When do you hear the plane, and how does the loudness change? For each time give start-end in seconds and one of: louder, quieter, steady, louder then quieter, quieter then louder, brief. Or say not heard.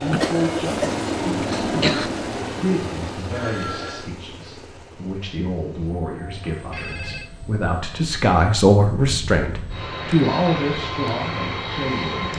0.0-12.3 quieter then louder.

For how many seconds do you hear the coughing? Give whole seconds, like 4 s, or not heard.
2 s.